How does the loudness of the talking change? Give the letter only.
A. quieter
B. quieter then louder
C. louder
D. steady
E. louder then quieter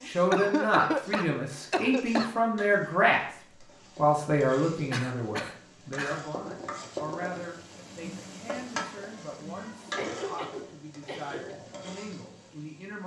A.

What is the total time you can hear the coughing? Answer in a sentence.
The coughing can be heard for 5 seconds in total.